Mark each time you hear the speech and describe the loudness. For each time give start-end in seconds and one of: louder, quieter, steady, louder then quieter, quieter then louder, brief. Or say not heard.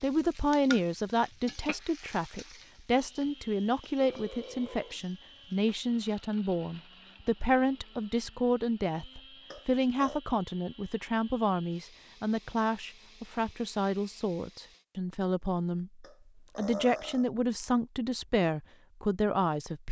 0.0-19.8 steady.